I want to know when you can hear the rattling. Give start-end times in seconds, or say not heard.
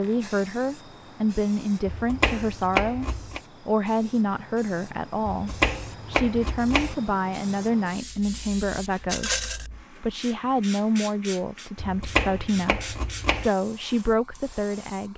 9.1-9.7.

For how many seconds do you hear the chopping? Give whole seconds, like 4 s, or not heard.
5 s.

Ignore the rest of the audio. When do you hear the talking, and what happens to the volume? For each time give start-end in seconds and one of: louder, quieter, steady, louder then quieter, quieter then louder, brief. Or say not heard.
0.0-15.1 steady.